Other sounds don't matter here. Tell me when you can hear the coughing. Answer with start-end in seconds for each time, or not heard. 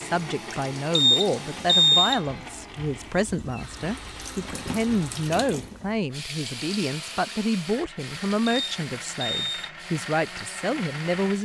not heard.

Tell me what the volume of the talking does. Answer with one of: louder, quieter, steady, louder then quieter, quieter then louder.
steady.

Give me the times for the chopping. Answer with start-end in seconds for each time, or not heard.
not heard.